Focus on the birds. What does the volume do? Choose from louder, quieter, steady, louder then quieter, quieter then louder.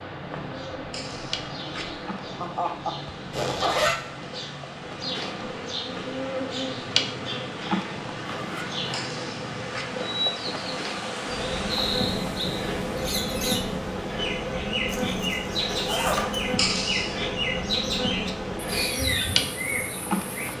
louder.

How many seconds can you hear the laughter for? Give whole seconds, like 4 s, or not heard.
4 s.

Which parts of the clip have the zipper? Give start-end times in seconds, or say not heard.
3.3-4.0, 8.2-8.8, 14.8-16.6.